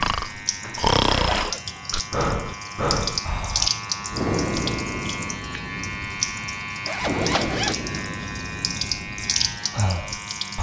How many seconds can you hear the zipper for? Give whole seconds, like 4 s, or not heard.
2 s.